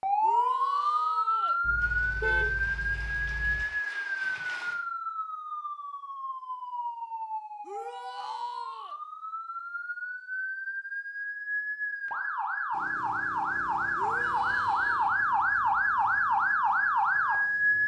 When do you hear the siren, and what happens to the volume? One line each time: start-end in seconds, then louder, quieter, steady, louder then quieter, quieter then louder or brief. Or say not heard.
0.0-17.8 quieter then louder.